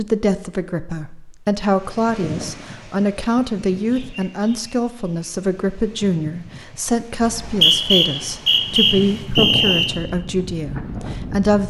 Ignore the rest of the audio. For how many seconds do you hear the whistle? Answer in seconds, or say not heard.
3 s.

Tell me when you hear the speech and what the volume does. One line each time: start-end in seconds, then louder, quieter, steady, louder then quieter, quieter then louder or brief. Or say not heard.
0.0-11.6 steady.